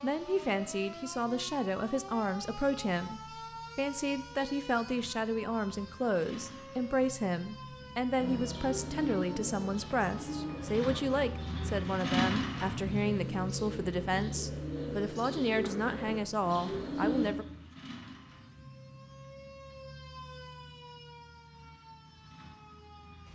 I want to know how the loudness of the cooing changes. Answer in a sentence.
The volume of the cooing goes down, then up.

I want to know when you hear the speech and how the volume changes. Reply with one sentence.
You can hear the speech from 0.0 to 17.4 s, at a steady volume.